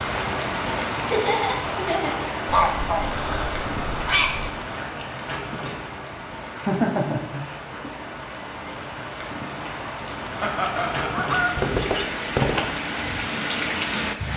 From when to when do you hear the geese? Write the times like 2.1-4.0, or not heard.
2.5-4.5, 10.8-12.8.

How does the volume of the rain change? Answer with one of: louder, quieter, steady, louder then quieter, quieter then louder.
quieter then louder.